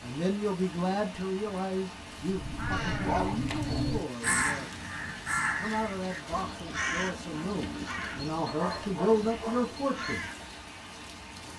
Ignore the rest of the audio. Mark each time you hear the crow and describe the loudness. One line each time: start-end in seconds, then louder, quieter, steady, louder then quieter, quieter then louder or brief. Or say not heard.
2.2-10.6 quieter.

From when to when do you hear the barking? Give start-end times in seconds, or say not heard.
2.7-4.1, 8.4-9.7.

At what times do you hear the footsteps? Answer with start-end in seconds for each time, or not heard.
not heard.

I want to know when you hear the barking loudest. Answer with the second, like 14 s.
3 s.